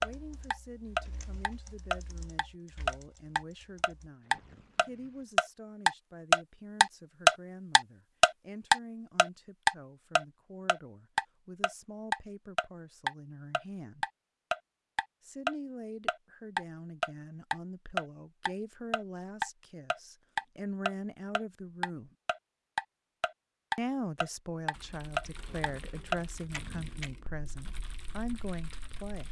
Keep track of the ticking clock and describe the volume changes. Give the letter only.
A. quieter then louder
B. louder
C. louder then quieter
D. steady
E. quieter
C.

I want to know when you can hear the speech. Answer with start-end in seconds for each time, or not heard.
0.0-14.1, 15.2-22.1, 23.8-29.2.